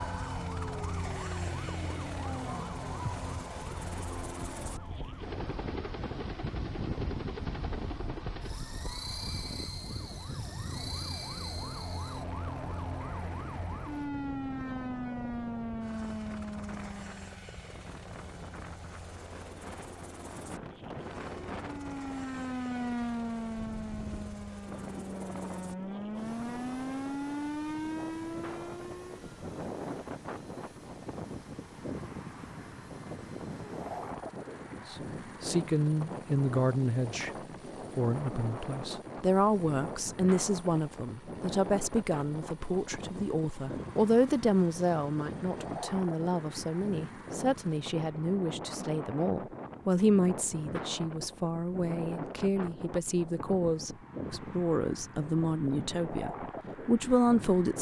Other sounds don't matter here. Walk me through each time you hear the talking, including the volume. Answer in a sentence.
You can hear the talking briefly from 34.9 to 37.3 s; and from 38.0 to 57.7 s, at a steady volume.